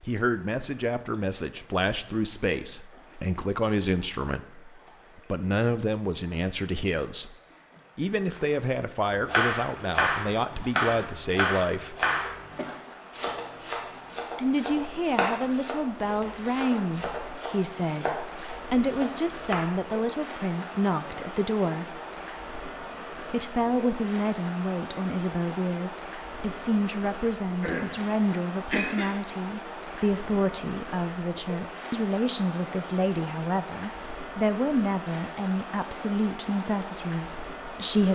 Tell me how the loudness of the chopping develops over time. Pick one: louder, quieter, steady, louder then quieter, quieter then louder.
quieter.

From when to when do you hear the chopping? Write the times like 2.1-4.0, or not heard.
9.2-19.8.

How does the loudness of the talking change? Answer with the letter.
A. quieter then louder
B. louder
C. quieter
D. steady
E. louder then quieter
D.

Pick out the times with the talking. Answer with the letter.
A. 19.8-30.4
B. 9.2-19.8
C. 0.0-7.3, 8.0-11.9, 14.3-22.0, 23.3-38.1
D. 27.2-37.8
C.